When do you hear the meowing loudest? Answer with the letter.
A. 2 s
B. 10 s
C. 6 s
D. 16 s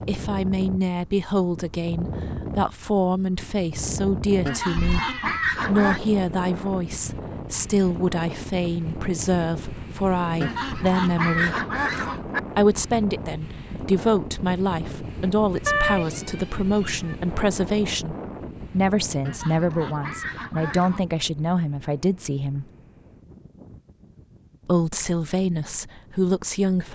D.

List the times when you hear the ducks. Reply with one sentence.
You can hear the ducks from 4.5 to 6.0 s, from 10.4 to 12.4 s and from 19.2 to 21.1 s.